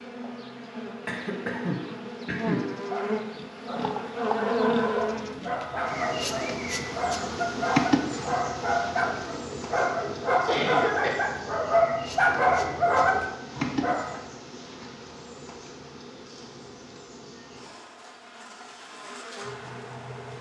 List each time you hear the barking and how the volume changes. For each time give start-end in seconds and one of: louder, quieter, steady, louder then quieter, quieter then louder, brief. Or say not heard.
2.9-14.2 louder.